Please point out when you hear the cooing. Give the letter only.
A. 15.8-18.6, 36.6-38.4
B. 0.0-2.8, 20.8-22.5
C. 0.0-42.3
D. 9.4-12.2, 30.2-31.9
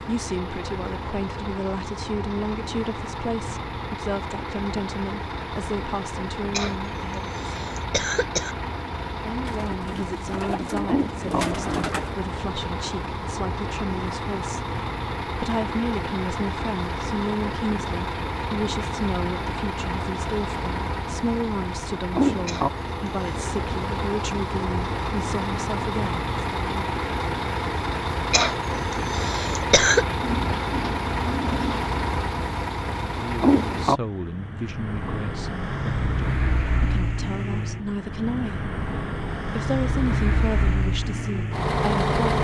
D.